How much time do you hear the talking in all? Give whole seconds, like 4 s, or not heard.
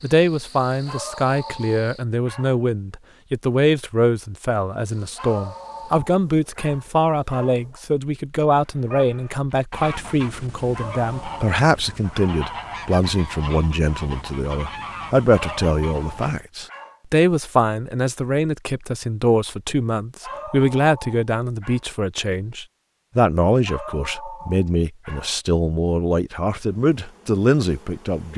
28 s.